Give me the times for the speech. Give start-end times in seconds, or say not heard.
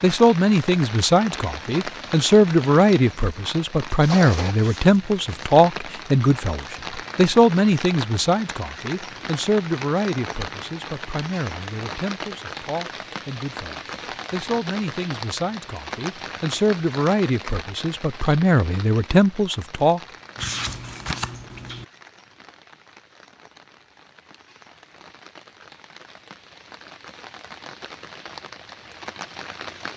0.0-20.0.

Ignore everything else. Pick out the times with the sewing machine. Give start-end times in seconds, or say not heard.
not heard.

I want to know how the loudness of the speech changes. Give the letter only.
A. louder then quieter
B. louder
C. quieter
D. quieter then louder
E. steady
D.